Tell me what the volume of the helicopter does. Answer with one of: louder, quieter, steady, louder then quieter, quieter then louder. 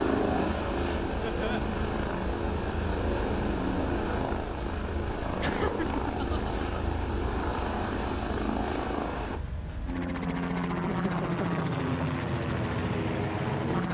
steady.